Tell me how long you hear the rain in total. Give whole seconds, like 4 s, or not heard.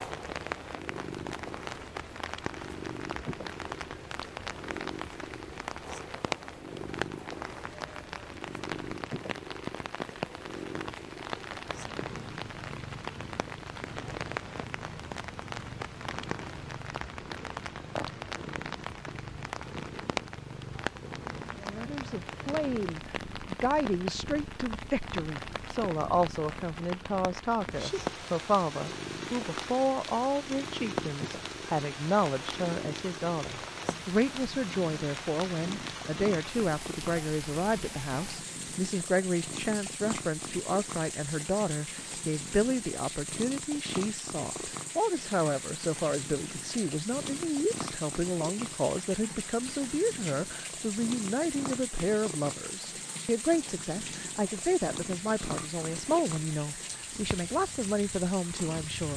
59 s.